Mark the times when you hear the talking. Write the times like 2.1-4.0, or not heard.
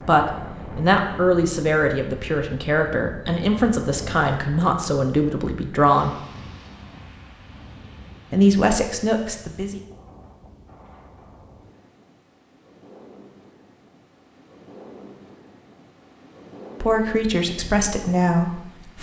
0.0-6.1, 8.3-9.8, 16.8-18.9.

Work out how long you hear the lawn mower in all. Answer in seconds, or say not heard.
not heard.